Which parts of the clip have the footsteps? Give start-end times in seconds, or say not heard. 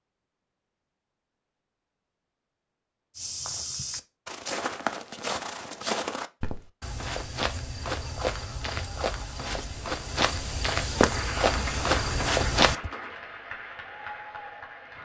3.1-12.9.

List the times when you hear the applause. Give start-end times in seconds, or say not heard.
11.1-14.9.